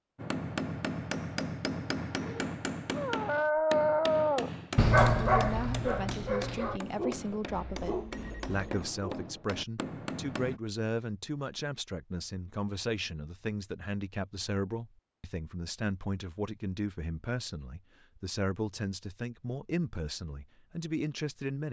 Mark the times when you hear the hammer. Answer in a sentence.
The hammer can be heard from 0.1 to 10.6 s.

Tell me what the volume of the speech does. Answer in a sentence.
The loudness of the speech stays about the same.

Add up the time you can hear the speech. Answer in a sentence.
The speech can be heard for 16 seconds in total.